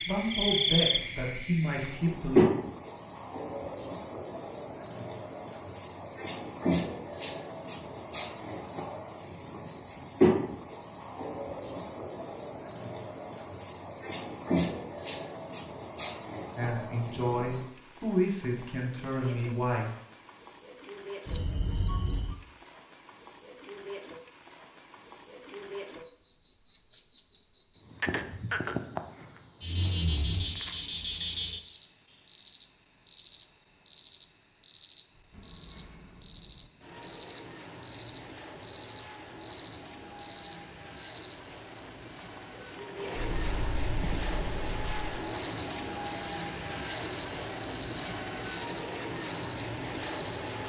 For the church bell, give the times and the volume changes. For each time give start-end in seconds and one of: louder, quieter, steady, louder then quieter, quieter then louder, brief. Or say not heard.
not heard.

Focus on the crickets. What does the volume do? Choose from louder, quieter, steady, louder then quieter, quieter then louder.
steady.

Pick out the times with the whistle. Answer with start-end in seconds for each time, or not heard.
not heard.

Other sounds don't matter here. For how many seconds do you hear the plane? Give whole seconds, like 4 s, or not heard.
15 s.